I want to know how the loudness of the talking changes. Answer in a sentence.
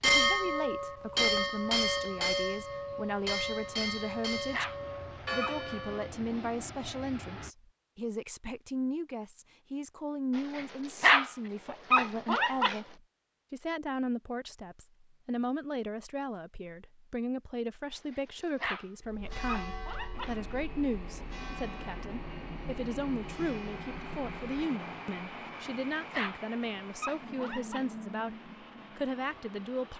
The volume of the talking stays about the same.